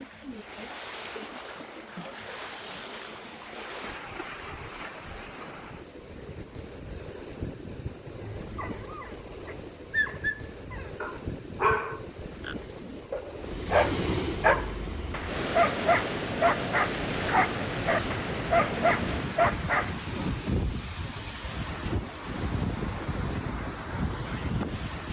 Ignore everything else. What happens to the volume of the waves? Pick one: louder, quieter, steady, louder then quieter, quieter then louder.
louder.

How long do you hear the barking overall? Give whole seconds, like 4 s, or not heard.
12 s.